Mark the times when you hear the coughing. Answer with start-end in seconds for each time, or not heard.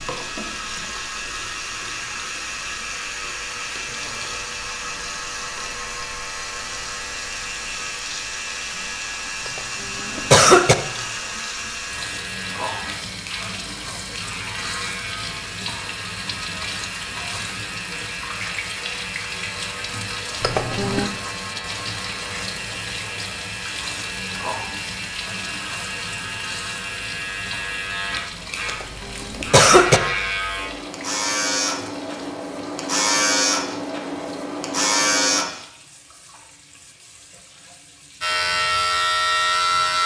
9.4-10.8, 20.4-21.1, 28.6-30.0.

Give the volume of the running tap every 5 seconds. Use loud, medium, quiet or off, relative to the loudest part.
loud, loud, loud, loud, loud, loud, medium, quiet.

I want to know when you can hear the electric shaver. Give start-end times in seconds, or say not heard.
0.0-35.5, 38.2-40.0.